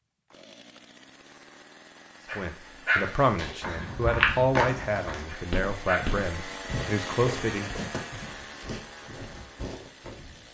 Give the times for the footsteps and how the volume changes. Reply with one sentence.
You can hear the footsteps from 3.0 to 10.4 s, getting quieter.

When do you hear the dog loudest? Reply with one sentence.
The volume of the dog peaks at 3 seconds.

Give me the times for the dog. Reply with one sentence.
You can hear the dog from 2.2 to 3.2 s and from 5.2 to 6.2 s.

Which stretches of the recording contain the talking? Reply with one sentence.
You can hear the talking from 2.3 to 7.8 s.